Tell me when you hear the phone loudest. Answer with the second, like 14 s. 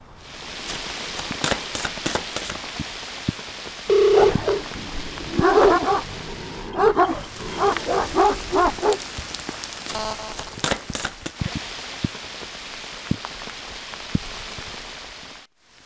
4 s.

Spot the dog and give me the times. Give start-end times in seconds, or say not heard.
4.1-9.0.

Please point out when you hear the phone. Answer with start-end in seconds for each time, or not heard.
3.9-4.6, 9.9-10.6.